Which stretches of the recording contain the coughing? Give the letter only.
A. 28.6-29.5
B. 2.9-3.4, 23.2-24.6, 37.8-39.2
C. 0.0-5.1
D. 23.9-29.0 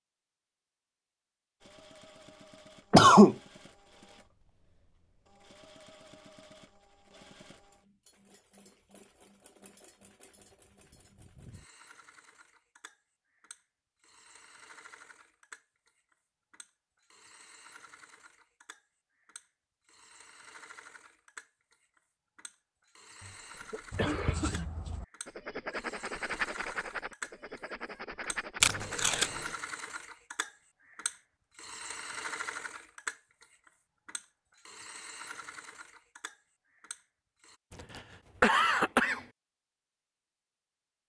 B.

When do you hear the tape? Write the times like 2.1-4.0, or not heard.
28.6-29.5.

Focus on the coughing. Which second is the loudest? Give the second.
3 s.